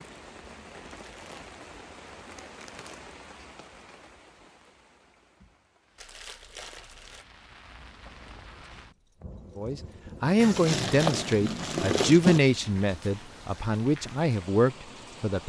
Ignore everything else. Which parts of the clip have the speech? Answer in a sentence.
You can hear the speech from 9.6 to 15.4 s.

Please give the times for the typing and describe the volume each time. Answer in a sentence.
You can't hear the typing here.